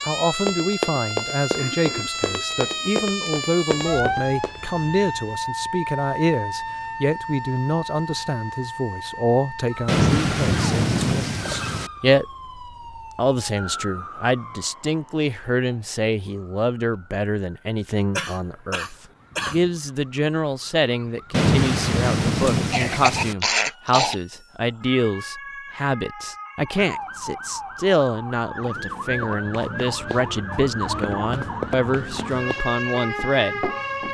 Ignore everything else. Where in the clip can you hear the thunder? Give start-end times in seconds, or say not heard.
9.8-11.9, 21.3-23.4.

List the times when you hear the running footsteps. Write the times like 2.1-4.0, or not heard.
0.3-4.6, 29.2-34.0.